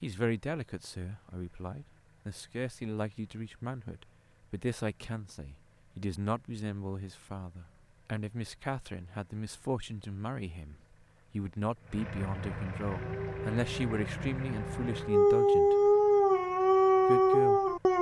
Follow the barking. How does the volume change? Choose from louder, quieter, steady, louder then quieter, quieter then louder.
louder.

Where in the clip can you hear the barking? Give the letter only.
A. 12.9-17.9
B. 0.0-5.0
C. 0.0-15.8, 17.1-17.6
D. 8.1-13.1
A.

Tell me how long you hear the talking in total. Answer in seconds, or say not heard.
16 s.